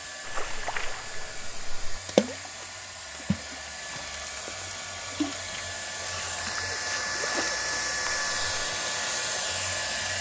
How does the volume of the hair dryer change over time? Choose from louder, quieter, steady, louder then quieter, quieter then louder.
louder.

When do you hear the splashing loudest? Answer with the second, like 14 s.
2 s.